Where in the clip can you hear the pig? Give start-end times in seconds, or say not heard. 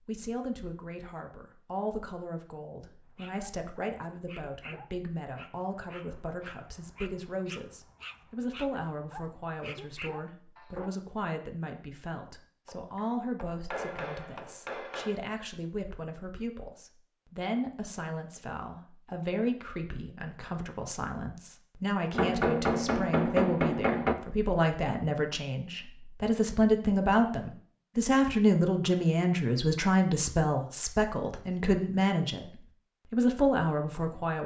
not heard.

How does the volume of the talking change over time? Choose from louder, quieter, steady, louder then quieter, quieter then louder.
louder.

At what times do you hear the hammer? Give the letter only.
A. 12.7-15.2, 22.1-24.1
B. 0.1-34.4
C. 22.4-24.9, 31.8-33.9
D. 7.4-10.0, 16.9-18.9
A.